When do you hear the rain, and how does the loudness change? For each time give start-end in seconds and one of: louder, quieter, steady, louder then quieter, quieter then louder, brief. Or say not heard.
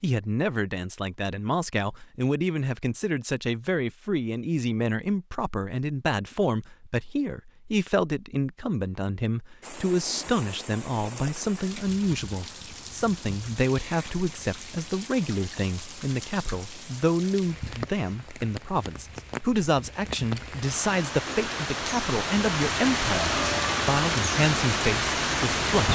9.6-25.9 louder.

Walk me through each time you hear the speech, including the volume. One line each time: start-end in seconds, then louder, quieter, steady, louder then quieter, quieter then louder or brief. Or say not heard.
0.0-25.9 steady.